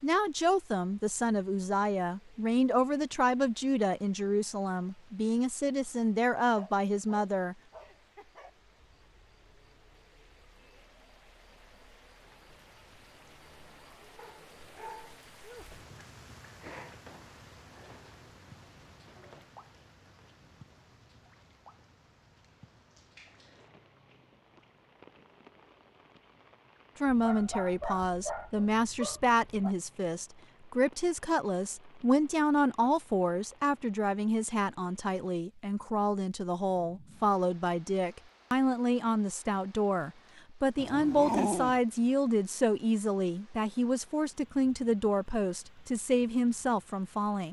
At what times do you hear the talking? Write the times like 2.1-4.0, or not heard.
0.0-7.5, 27.0-47.4.